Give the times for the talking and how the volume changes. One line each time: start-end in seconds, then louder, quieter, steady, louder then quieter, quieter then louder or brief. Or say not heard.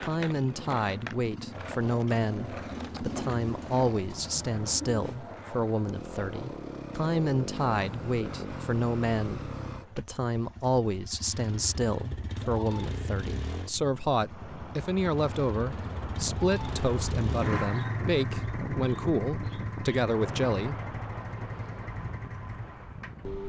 0.0-20.8 steady.